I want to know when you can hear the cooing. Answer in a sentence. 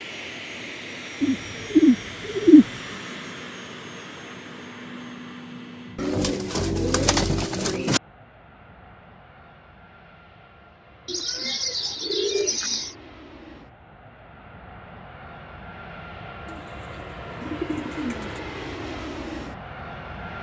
You can hear the cooing from 1.2 to 2.6 s, from 6.0 to 8.0 s, from 11.1 to 12.9 s and from 16.4 to 18.4 s.